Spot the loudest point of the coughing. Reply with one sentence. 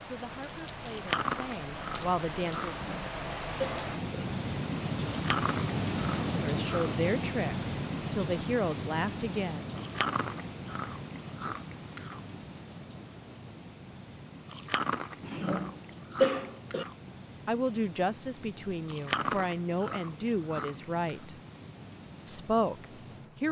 The loudest moment of the coughing is at 16 seconds.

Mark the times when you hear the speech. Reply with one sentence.
The speech can be heard from 0.0 to 2.9 s, from 6.2 to 9.7 s, from 17.4 to 21.4 s and from 22.2 to 23.4 s.